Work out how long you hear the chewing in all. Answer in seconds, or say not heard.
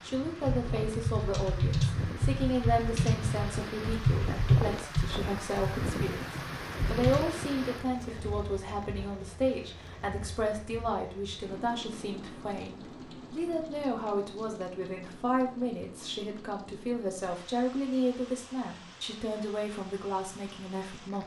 not heard.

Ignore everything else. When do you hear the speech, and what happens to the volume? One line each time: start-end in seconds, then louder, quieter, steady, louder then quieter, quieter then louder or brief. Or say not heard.
0.0-21.2 steady.